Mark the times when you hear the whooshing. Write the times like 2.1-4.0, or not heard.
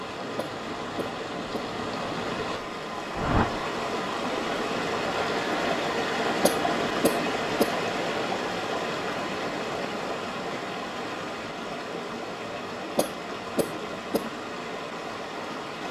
3.1-3.6.